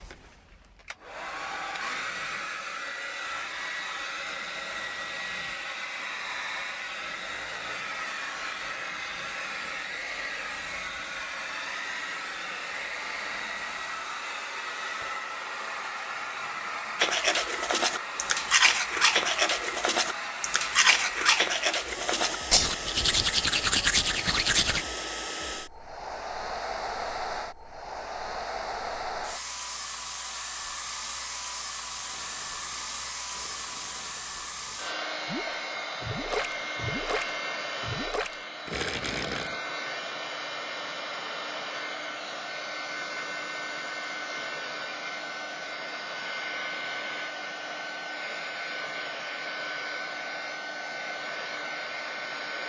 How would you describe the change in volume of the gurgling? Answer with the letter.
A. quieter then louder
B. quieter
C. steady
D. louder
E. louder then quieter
D.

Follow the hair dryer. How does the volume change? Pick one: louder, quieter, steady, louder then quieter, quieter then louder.
steady.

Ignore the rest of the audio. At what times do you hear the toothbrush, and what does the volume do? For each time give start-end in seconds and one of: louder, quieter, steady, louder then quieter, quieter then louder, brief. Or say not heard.
16.9-24.9 steady.